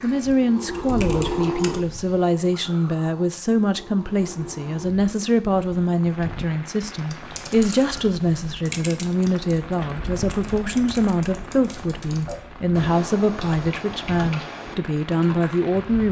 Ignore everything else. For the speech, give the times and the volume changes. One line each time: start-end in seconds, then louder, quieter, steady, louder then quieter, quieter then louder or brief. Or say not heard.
0.0-16.0 steady.